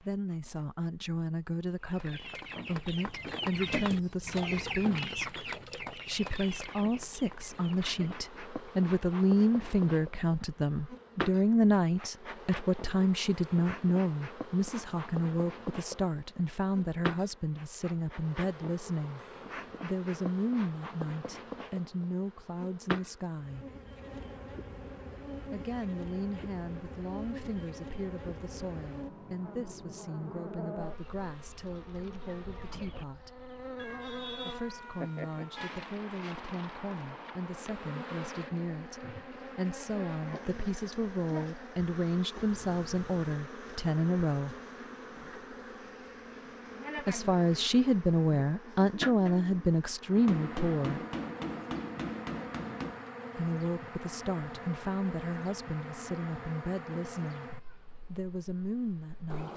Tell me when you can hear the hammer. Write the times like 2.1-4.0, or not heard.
50.1-53.1.